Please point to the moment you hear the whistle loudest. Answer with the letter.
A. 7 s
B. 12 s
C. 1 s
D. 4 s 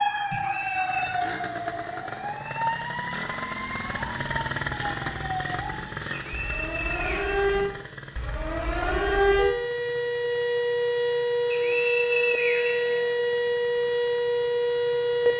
B.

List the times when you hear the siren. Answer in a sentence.
You can hear the siren from 0.0 to 15.3 s.